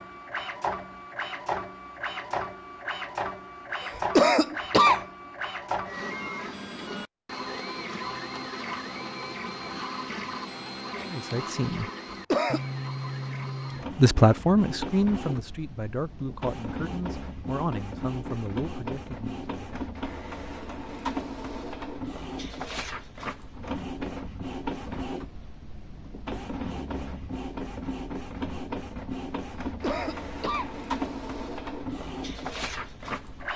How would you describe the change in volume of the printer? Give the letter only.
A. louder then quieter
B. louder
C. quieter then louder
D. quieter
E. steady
E.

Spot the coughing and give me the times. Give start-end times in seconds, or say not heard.
4.0-5.0, 12.1-12.6, 29.6-30.7.